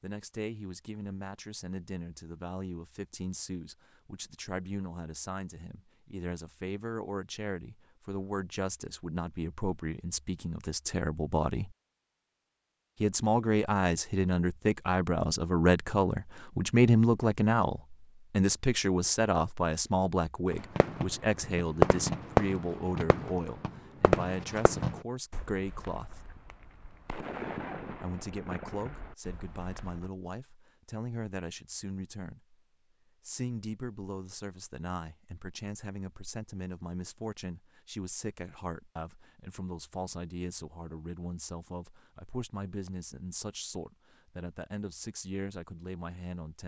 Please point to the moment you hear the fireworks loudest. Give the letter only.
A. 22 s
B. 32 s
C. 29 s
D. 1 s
A.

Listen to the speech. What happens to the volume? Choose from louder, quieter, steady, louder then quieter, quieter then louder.
louder then quieter.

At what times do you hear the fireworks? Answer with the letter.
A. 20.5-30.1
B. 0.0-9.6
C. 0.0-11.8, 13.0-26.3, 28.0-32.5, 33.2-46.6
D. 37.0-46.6
A.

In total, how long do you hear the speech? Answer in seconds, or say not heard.
43 s.